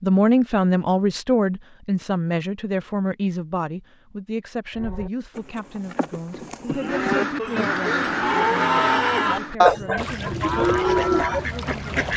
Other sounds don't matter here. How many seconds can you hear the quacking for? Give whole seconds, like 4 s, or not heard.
5 s.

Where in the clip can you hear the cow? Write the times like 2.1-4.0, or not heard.
4.7-11.4.